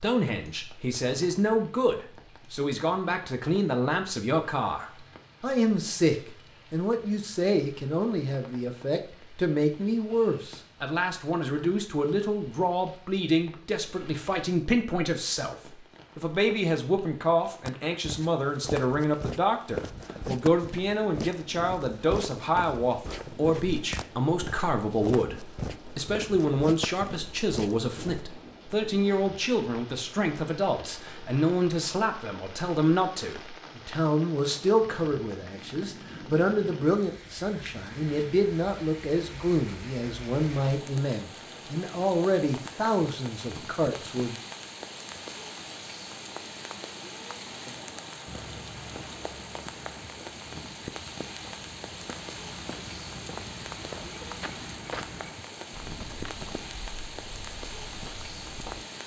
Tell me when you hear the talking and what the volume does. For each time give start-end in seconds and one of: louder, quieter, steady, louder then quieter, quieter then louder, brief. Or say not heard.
0.0-15.6 steady
16.1-44.4 steady.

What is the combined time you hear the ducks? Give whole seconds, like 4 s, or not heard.
not heard.